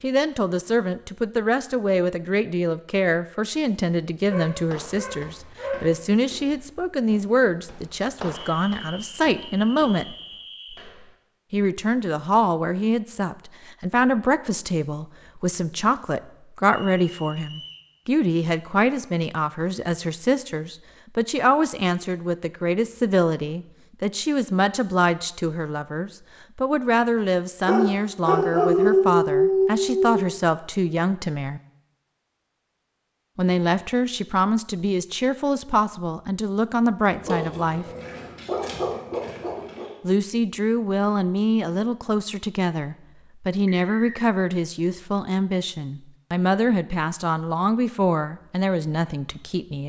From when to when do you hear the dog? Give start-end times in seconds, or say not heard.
4.3-5.9, 27.6-30.2, 37.1-39.9.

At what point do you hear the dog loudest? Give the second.
29 s.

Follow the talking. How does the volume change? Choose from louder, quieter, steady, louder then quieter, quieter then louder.
steady.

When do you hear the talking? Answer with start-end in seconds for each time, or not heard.
0.0-10.2, 11.5-31.6, 33.4-37.9, 40.0-49.8.